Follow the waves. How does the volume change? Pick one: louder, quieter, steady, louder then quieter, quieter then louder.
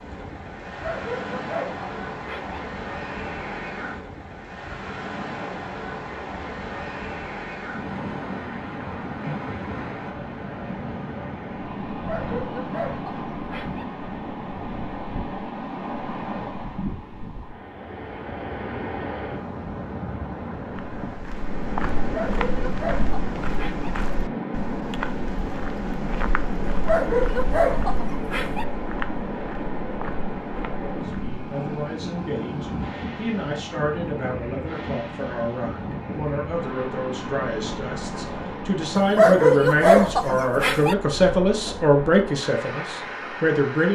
steady.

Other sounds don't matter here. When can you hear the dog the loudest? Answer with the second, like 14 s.
39 s.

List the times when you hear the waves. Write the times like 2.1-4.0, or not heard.
0.0-43.9.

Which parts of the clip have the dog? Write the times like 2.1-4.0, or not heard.
0.7-2.6, 11.9-13.8, 22.1-23.9, 26.6-28.6, 39.0-41.0.